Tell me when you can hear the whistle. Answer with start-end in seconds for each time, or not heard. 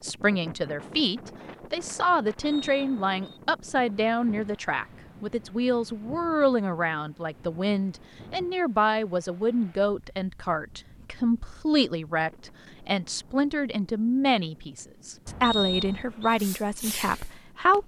2.4-3.4, 15.4-16.4.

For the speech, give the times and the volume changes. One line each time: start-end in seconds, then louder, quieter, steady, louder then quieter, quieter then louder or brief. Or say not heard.
0.0-17.8 steady.